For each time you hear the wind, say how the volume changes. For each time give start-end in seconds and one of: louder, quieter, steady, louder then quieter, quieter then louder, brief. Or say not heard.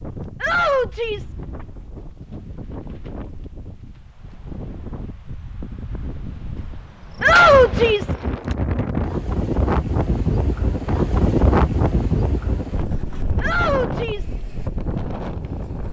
0.0-15.8 louder then quieter.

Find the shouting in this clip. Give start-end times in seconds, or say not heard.
0.4-1.4, 7.2-8.2, 13.4-14.3.